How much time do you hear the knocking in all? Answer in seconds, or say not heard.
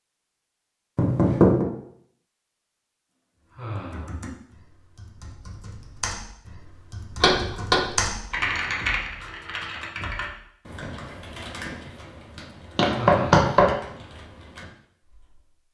2 s.